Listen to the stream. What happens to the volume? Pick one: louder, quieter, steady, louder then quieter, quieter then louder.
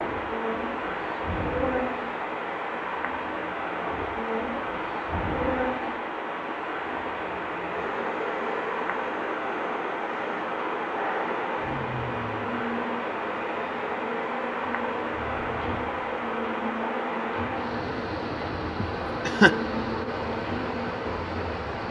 steady.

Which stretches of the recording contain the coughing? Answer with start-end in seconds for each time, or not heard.
18.8-19.5.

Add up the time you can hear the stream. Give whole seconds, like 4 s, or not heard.
22 s.